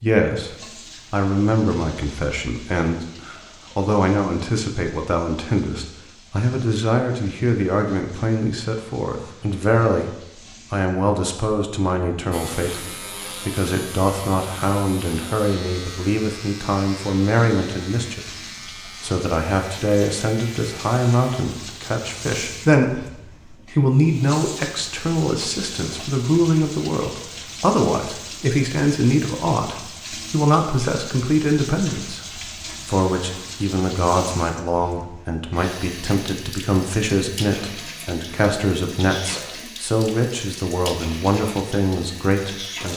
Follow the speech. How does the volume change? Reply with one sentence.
The loudness of the speech stays about the same.